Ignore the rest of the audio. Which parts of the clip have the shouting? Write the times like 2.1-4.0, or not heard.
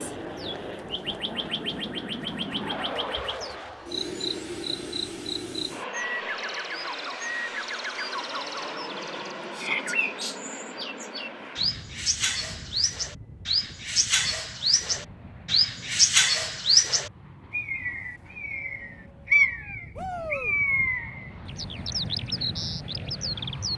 9.5-9.9, 19.9-20.6.